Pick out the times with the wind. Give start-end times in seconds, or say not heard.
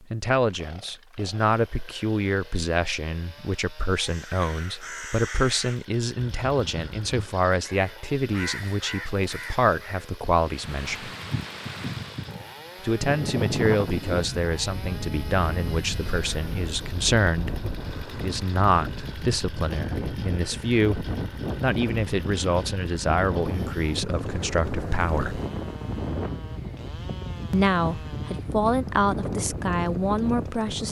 10.4-30.8.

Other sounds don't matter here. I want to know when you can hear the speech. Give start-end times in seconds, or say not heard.
0.1-11.1, 12.8-25.4, 27.5-30.8.